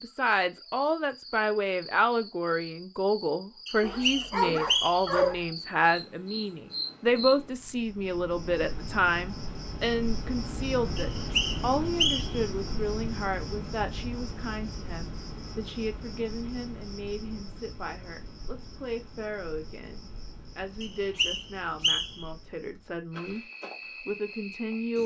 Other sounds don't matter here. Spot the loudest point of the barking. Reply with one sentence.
The volume of the barking peaks at 5 seconds.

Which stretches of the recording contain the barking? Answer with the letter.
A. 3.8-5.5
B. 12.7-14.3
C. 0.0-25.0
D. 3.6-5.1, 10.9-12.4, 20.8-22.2
A.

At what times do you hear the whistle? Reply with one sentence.
The whistle can be heard from 3.6 to 5.1 s, from 10.9 to 12.4 s and from 20.8 to 22.2 s.